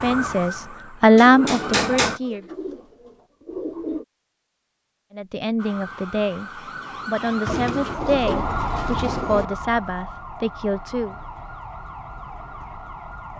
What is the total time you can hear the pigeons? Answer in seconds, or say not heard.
5 s.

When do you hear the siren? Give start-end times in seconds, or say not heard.
0.0-2.2, 5.5-13.3.